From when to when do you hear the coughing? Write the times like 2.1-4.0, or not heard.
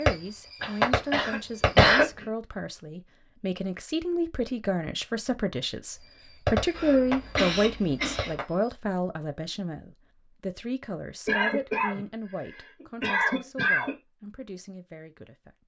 0.6-2.2, 6.8-8.3, 11.2-12.0, 12.8-13.9.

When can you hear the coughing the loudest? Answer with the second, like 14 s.
2 s.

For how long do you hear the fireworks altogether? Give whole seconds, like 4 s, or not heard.
5 s.